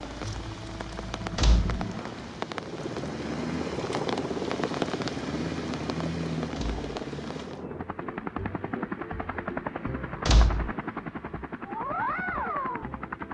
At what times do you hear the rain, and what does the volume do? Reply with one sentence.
You can hear the rain from 0.0 to 7.7 s, getting louder.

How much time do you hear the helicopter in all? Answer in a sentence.
The helicopter can be heard for 13 seconds in total.